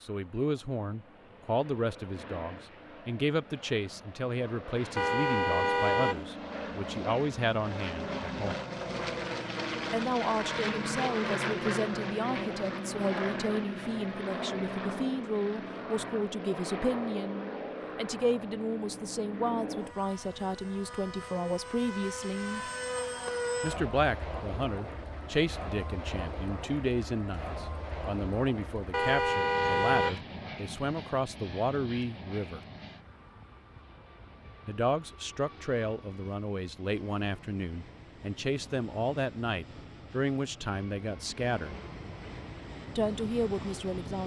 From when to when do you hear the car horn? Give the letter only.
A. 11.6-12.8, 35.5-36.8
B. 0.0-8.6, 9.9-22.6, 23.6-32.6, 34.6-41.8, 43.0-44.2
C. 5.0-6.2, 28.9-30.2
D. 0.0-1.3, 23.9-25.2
C.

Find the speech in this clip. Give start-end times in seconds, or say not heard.
0.0-8.6, 9.9-22.6, 23.6-32.6, 34.6-41.8, 43.0-44.2.